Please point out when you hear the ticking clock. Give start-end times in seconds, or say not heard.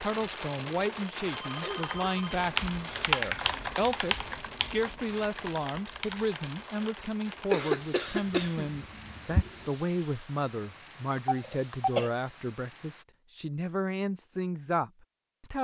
not heard.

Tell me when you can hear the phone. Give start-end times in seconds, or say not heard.
1.3-2.4, 11.2-11.9.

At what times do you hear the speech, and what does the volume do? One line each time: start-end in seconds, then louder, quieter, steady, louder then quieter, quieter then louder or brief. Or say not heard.
0.0-15.6 steady.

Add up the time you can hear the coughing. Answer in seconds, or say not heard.
3 s.